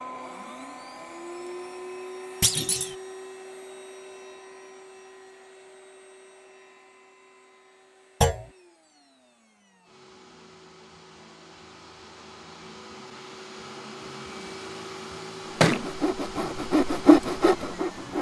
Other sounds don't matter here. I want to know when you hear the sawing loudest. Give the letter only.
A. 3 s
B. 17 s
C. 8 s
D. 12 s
B.